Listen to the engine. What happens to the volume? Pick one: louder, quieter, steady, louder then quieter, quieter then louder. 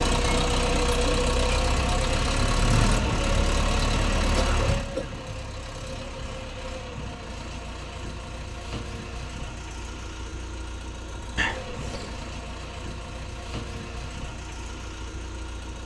quieter.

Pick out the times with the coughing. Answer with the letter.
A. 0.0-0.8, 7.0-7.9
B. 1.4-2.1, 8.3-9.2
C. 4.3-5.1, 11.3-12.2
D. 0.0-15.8
C.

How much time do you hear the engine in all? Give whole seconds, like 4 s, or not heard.
16 s.